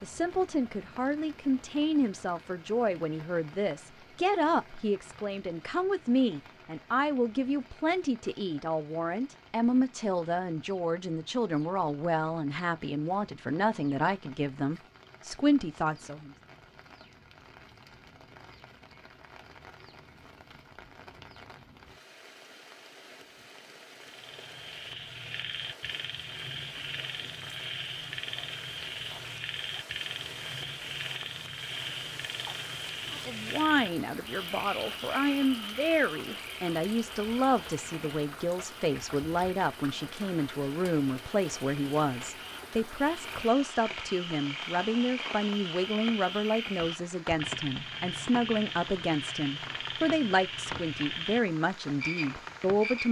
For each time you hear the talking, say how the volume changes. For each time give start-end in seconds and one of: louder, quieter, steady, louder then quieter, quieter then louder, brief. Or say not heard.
0.0-16.4 steady
33.1-53.0 steady.